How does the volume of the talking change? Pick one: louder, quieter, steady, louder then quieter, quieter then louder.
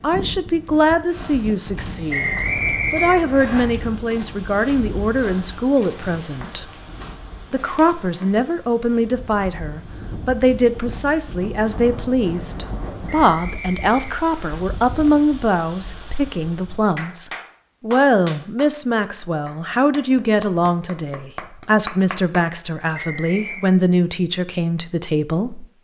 steady.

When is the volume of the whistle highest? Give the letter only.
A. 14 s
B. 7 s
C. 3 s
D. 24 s
C.